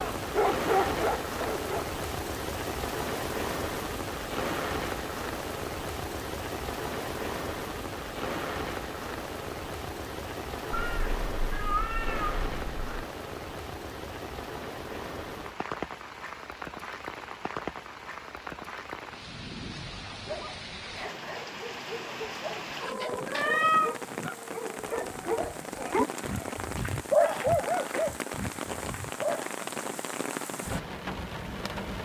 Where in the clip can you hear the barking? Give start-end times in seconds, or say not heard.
0.0-1.9, 20.1-29.5.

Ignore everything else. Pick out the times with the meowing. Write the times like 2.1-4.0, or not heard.
10.7-13.1, 22.8-23.9.